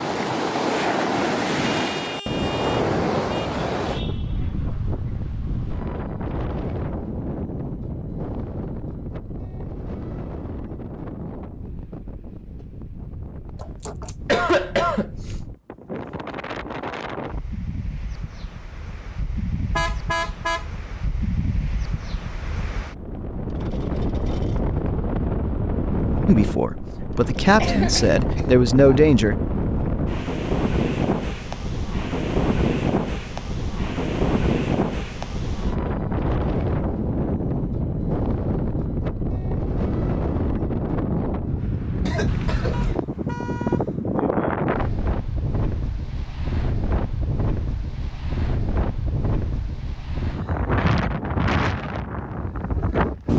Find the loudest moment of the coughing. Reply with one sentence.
The volume of the coughing peaks at 14 seconds.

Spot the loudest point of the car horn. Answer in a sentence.
The loudest moment of the car horn is at 20 seconds.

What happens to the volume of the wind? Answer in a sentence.
The volume of the wind goes down, then up.